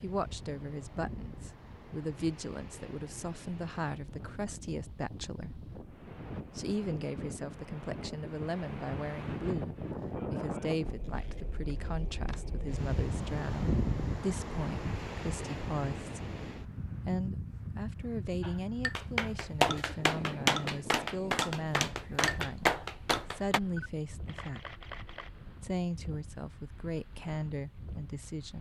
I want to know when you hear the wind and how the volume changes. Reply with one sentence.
The wind can be heard from 0.0 to 28.5 s, getting louder then quieter.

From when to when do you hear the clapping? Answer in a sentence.
You can hear the clapping from 18.4 to 23.6 s.